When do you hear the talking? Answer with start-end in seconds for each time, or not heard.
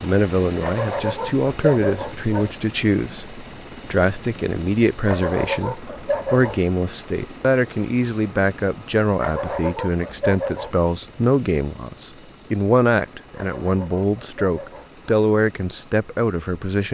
0.0-16.8.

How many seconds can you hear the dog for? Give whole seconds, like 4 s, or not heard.
7 s.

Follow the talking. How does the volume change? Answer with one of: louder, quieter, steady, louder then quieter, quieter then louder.
steady.